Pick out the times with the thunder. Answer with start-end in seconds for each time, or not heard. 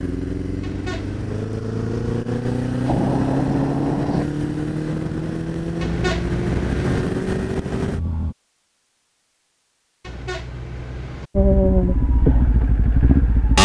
2.9-4.2.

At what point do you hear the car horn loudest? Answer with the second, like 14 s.
6 s.